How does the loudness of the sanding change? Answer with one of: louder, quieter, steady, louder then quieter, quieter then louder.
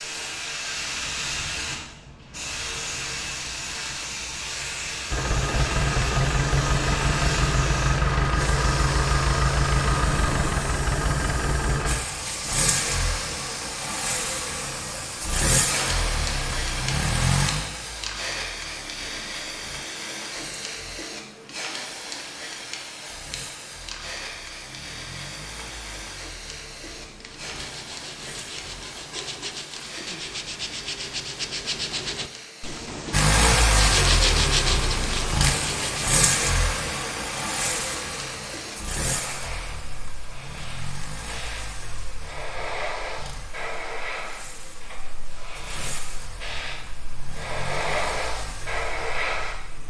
louder.